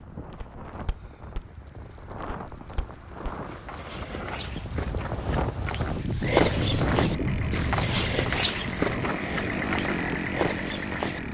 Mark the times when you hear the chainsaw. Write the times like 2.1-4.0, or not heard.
7.0-11.2.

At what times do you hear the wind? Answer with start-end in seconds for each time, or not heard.
0.0-11.2.